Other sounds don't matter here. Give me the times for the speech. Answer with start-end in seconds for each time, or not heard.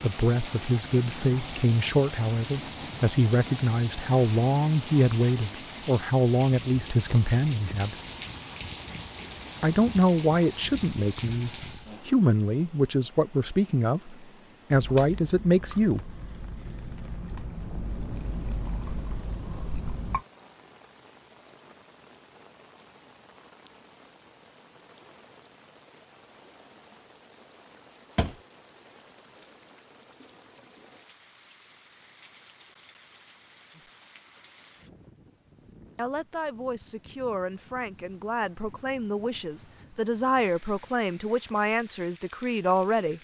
0.0-8.0, 9.6-16.1, 36.0-43.1.